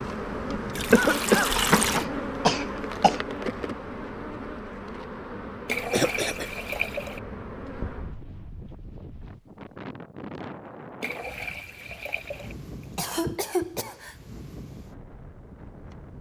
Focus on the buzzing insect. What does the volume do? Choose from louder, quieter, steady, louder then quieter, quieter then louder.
quieter.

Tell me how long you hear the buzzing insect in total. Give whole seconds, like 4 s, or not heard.
8 s.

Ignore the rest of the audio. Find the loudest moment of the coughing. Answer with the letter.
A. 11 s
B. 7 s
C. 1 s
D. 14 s
C.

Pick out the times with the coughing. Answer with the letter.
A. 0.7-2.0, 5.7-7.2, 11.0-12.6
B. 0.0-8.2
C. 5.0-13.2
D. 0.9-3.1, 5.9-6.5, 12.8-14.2
D.